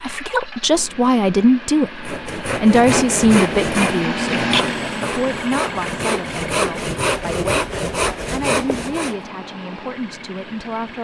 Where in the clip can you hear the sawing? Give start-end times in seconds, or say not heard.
2.0-9.2.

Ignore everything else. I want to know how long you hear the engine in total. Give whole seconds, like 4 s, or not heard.
11 s.